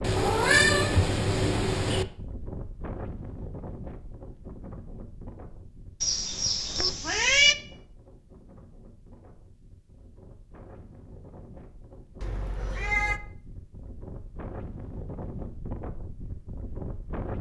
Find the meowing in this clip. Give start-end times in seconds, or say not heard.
0.0-2.0, 6.0-7.5, 12.2-13.2.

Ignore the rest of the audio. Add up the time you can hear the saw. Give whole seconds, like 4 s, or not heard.
not heard.